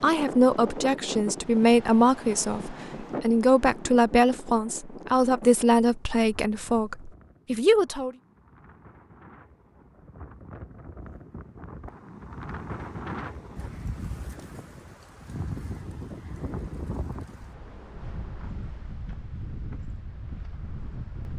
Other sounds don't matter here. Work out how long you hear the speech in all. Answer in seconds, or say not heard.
8 s.